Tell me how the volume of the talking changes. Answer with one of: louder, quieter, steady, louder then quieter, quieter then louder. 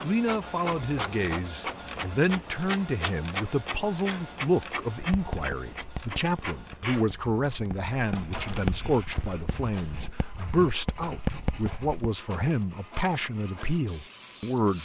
steady.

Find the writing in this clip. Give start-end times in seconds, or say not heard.
5.0-12.2.